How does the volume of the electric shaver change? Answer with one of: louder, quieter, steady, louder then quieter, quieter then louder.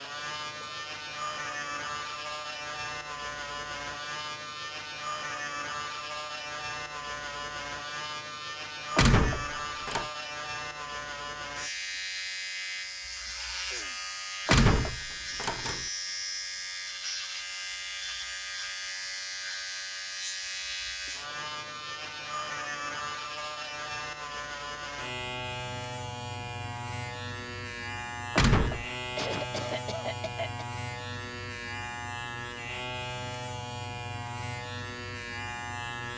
steady.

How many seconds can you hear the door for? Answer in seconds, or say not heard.
3 s.